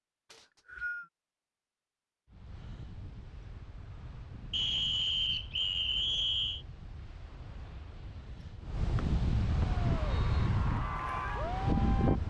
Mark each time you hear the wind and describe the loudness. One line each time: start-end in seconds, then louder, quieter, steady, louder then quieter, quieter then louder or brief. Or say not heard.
2.2-12.2 louder.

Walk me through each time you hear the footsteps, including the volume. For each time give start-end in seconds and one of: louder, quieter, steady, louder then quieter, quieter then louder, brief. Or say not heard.
not heard.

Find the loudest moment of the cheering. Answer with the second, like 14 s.
11 s.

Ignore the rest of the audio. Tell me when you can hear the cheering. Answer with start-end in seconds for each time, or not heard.
9.7-12.2.